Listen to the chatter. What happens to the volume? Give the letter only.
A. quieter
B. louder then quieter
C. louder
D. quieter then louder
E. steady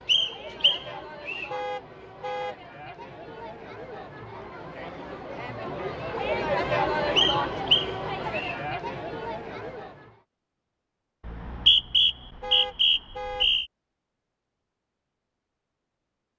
B.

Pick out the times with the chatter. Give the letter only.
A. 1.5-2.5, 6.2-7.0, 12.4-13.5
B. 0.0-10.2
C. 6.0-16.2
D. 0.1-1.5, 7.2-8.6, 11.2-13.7
B.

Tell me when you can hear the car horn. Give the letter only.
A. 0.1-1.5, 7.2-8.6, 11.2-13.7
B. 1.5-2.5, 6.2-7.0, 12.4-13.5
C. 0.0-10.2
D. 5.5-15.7
B.